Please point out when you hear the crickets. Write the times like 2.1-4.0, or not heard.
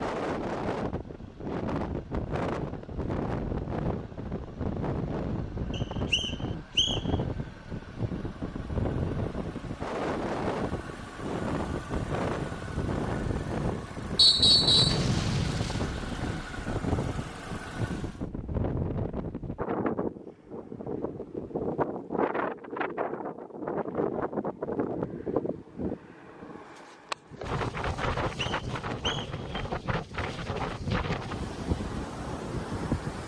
not heard.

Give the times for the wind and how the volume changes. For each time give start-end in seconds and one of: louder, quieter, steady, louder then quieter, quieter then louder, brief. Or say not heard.
0.0-33.2 steady.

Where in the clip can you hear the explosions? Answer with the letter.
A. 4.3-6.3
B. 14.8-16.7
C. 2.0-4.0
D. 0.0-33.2
B.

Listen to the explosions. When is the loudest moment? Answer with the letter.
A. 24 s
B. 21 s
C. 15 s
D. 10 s
C.